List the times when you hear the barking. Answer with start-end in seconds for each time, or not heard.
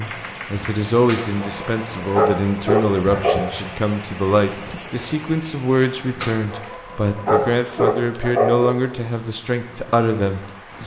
1.1-3.4, 6.2-8.8.